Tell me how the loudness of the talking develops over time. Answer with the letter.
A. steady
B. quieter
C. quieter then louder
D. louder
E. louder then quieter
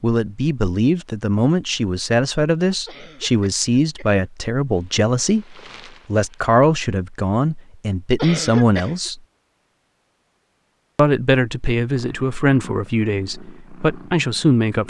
A.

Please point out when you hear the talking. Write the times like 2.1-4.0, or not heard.
0.0-9.2, 10.9-14.8.